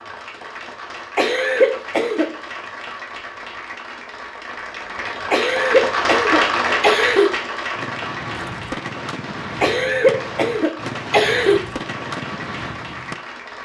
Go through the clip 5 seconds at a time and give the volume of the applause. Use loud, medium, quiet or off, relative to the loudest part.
medium, loud, medium.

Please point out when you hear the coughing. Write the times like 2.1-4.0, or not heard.
1.1-2.3, 5.3-7.3, 9.6-11.6.